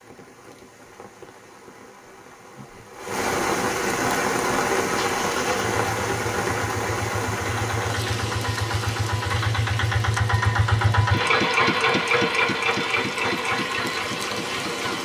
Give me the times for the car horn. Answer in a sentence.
The car horn can't be heard in this clip.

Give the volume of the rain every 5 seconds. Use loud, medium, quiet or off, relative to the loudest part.
loud, loud, medium.